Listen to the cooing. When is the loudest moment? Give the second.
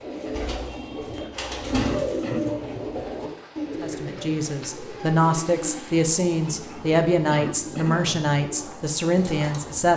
2 s.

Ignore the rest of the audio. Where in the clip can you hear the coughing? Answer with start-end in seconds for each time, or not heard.
1.8-2.4, 7.3-8.1.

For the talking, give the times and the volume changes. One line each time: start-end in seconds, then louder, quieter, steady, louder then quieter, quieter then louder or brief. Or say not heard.
3.8-9.9 steady.